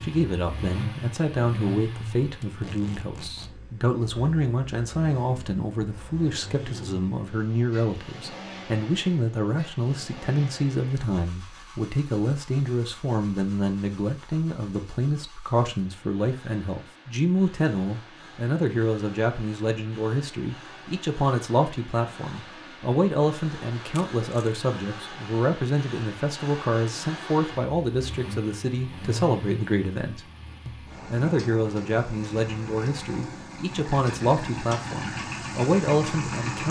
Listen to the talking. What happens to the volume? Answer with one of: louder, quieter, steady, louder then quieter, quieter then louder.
steady.